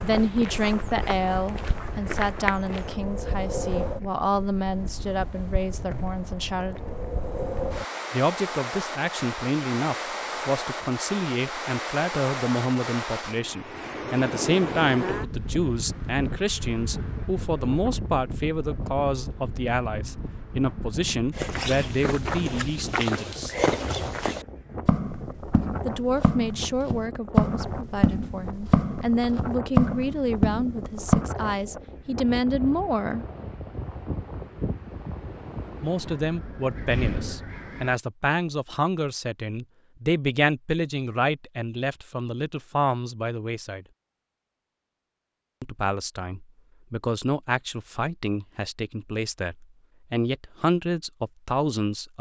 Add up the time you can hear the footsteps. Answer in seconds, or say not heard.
13 s.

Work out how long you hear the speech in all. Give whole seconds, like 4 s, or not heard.
44 s.